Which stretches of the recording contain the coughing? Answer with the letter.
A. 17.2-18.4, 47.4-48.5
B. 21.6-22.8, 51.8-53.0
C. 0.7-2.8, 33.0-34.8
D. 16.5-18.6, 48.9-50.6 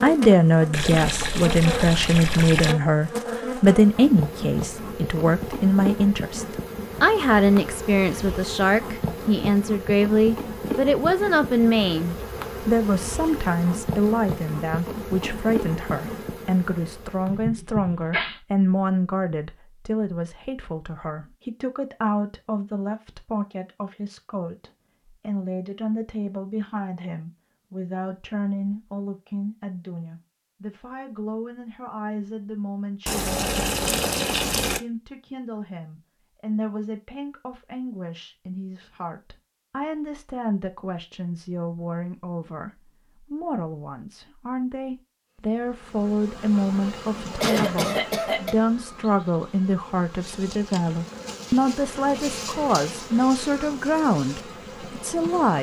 A.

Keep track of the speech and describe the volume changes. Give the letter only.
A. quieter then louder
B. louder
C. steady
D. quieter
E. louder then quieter
A.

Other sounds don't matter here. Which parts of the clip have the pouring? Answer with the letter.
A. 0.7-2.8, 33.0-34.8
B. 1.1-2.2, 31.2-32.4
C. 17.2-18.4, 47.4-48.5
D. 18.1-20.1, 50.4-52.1
A.